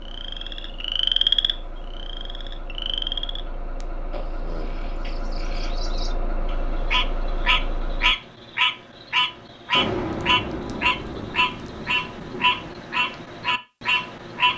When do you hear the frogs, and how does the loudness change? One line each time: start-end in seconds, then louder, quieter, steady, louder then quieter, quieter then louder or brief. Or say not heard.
0.1-14.5 quieter then louder.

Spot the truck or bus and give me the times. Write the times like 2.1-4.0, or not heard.
0.0-8.2.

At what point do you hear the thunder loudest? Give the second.
10 s.